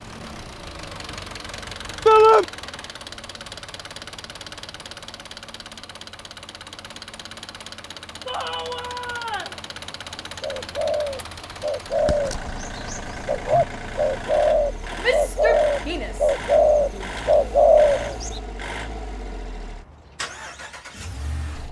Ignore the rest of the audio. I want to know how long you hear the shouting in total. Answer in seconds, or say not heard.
4 s.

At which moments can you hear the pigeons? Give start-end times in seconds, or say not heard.
10.4-18.4.